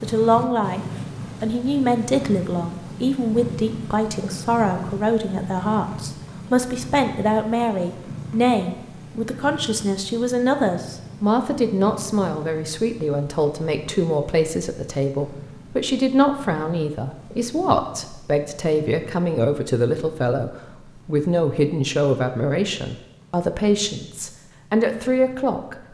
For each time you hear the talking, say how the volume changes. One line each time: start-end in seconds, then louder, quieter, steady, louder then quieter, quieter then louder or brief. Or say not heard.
0.0-0.8 brief
1.4-25.8 steady.